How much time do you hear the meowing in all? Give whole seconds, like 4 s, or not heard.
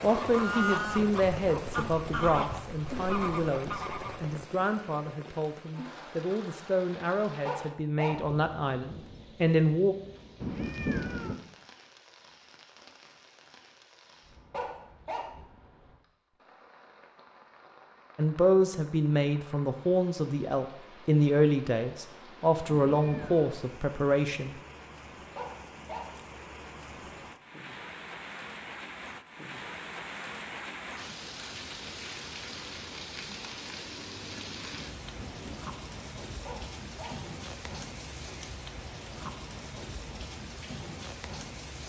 3 s.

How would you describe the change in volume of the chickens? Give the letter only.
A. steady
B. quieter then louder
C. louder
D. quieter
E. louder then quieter
D.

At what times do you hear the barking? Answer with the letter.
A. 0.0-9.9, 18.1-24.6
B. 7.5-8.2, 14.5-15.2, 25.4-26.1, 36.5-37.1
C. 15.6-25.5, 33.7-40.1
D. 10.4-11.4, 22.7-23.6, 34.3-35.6
B.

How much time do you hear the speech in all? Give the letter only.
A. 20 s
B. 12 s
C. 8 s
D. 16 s
D.